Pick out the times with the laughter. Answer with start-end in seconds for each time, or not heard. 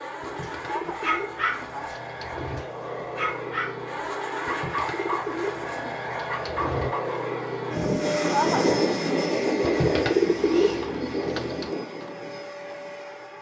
0.7-1.9, 8.2-8.8.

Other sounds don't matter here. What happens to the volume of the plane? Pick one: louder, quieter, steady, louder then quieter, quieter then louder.
louder then quieter.